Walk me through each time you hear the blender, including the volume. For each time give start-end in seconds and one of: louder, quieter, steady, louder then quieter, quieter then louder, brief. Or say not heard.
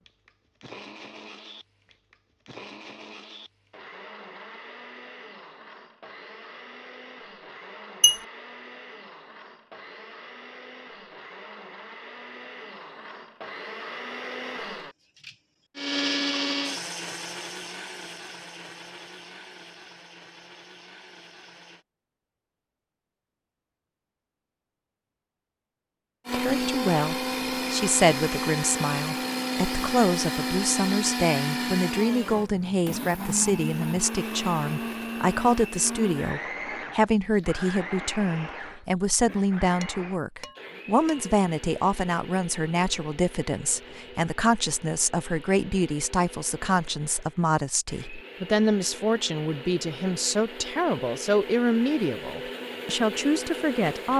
0.0-21.9 louder then quieter
26.2-54.1 quieter then louder.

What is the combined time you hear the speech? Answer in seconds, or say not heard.
28 s.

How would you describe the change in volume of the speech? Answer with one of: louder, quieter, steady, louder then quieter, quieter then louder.
steady.